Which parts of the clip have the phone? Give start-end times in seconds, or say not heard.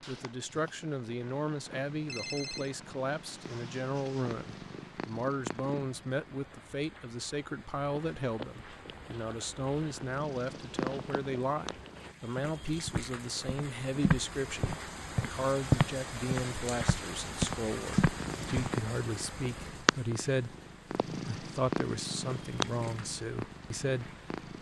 2.0-2.7.